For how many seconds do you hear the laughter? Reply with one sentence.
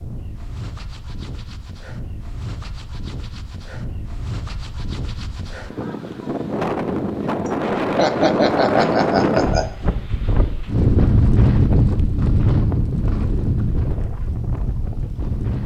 You can hear the laughter for 2 seconds altogether.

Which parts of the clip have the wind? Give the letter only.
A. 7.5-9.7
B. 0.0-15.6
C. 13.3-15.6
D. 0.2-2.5
B.